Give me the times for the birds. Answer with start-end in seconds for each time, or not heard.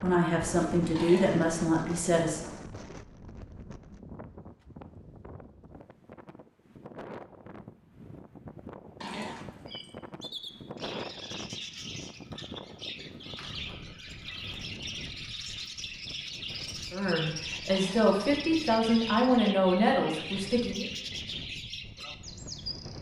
9.7-22.9.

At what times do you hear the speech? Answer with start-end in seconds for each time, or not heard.
0.0-2.5, 16.9-20.9.